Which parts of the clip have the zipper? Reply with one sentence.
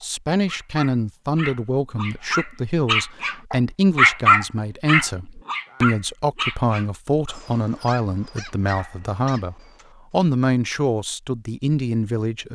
The zipper can't be heard in this clip.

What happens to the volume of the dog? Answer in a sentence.
The loudness of the dog goes up, then down.